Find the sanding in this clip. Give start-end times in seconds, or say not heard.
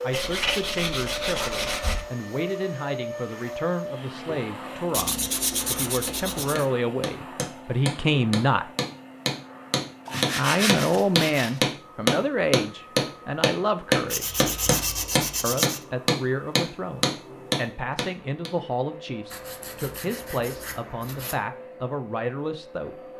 0.1-2.0, 4.9-6.7, 10.1-11.6, 14.1-15.8, 19.3-21.4.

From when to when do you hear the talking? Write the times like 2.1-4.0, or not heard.
0.0-8.7, 10.3-14.4, 15.4-22.9.